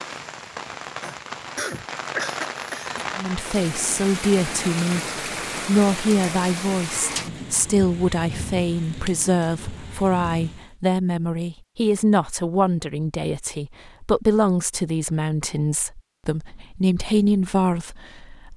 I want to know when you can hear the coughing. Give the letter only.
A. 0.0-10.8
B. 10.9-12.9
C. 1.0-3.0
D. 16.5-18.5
C.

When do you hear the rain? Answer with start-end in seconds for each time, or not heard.
0.0-10.8.